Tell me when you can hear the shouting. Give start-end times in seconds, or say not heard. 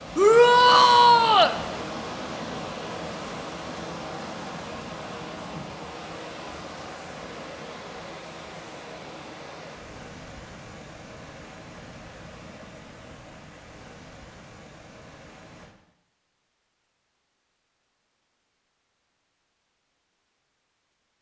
0.1-1.6.